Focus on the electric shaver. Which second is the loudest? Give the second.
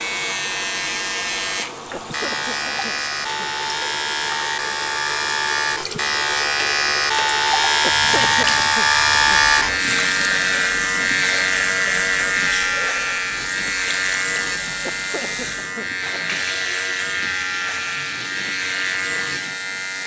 9 s.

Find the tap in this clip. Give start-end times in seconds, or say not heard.
0.0-20.0.